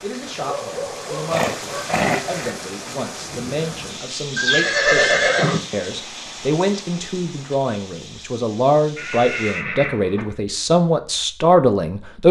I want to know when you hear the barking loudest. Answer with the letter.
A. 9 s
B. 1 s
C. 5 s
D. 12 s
B.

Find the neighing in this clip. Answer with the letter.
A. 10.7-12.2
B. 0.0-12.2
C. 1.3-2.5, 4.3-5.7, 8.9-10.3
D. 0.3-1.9
C.